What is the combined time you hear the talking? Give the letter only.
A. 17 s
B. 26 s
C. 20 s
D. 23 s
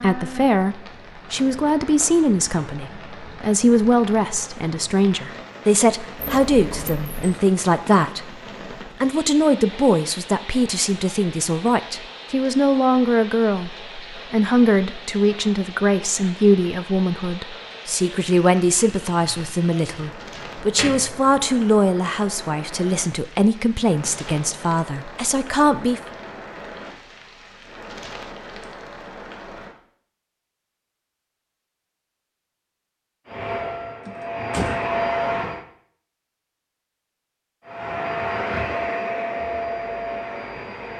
B.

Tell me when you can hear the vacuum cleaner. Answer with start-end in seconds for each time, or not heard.
33.2-35.6, 37.6-40.9.